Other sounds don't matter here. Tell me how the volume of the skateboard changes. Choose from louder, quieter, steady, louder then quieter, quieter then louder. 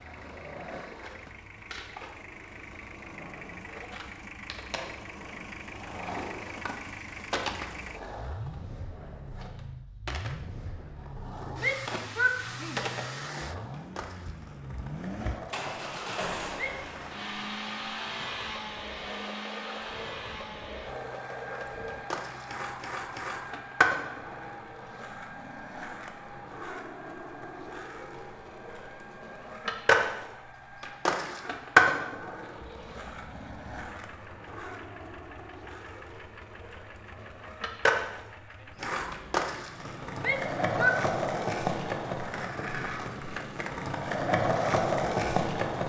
louder.